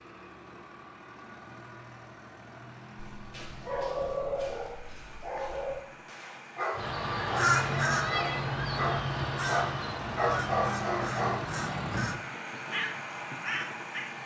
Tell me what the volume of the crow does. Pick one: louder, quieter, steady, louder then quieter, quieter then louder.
quieter.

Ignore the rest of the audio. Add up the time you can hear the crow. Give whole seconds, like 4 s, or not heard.
7 s.